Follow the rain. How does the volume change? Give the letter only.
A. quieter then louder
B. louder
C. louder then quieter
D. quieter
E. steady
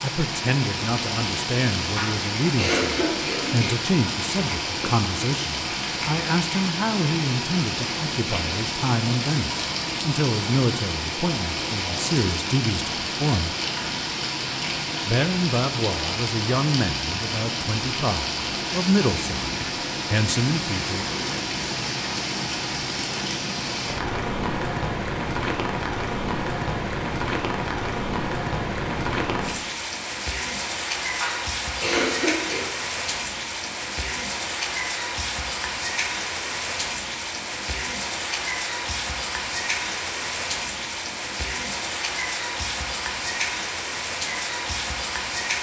E.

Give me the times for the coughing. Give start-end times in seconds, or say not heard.
1.9-3.8, 31.2-32.6.